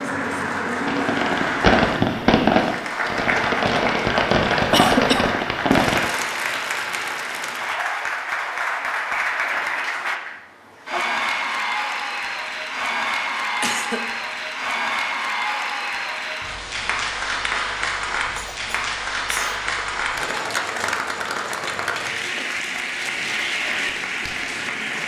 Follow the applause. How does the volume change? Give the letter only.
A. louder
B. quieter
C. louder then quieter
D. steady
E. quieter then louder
D.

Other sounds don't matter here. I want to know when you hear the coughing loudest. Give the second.
5 s.